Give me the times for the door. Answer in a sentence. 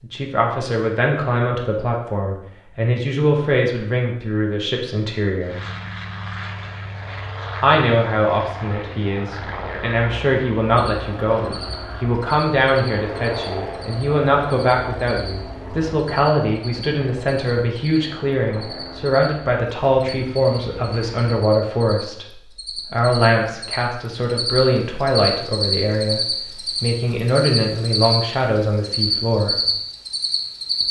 The door can't be heard in this clip.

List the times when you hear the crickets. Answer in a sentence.
The crickets can be heard from 10.8 to 30.8 s.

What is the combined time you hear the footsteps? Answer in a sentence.
You can't hear the footsteps here.